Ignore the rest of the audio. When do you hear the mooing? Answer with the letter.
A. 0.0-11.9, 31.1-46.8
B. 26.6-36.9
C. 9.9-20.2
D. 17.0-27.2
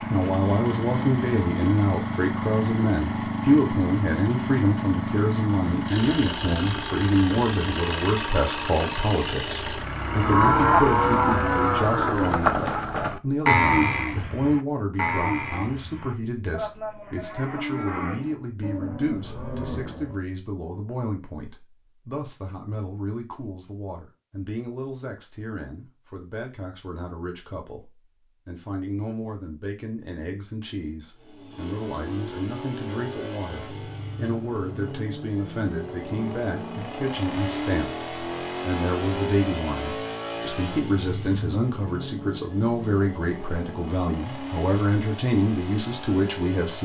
C.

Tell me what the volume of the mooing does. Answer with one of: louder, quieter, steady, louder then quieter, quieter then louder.
quieter.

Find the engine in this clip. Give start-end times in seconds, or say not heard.
0.0-11.9, 31.1-46.8.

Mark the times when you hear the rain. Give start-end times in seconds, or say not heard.
not heard.